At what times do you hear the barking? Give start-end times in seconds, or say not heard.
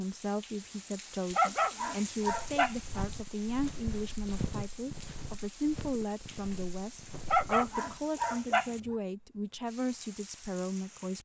1.3-3.0, 7.2-8.9.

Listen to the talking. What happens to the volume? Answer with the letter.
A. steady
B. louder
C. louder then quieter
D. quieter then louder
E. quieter
A.